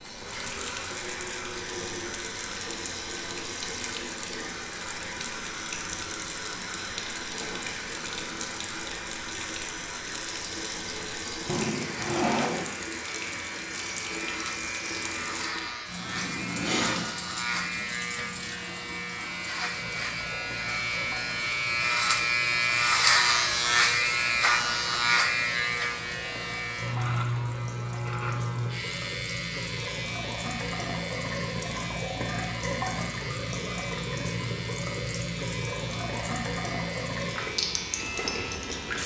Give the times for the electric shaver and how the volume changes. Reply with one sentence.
You can hear the electric shaver from 0.0 to 39.0 s, getting louder then quieter.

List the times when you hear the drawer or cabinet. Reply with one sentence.
You can hear the drawer or cabinet from 11.4 to 12.8 s.